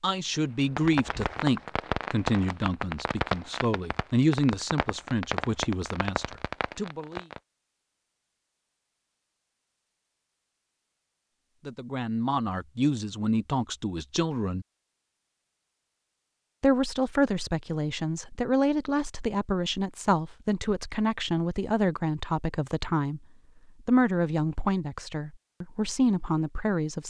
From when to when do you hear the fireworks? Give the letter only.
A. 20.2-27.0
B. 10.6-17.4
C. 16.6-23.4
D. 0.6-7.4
D.